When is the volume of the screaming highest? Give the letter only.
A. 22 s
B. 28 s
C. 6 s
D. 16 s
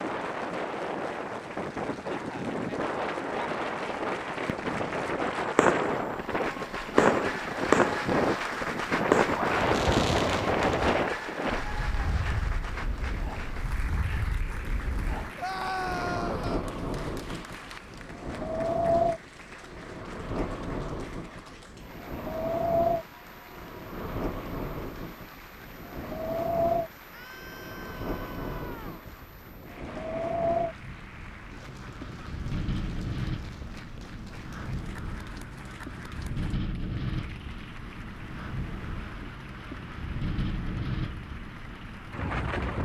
D.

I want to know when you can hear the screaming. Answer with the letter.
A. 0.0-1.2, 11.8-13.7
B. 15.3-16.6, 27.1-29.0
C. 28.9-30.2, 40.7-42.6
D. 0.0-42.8
B.